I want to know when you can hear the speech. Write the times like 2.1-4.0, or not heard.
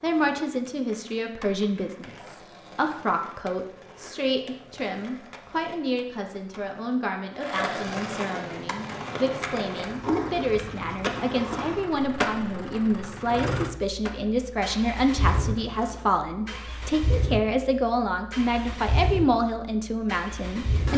0.0-20.9.